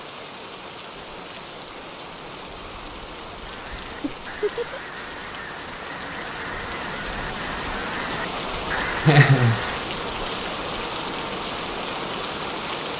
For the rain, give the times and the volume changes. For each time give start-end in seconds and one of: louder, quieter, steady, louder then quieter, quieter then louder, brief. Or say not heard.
0.0-12.9 louder.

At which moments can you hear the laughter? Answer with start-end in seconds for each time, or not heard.
4.0-4.8, 9.1-9.6.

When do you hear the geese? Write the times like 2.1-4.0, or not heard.
3.4-9.8.